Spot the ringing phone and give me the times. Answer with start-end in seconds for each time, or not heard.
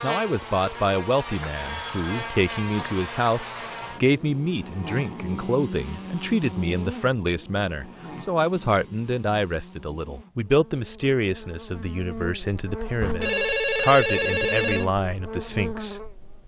1.6-3.0, 13.0-14.8.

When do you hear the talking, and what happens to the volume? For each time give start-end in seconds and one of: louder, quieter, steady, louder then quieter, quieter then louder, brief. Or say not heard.
0.0-16.0 steady.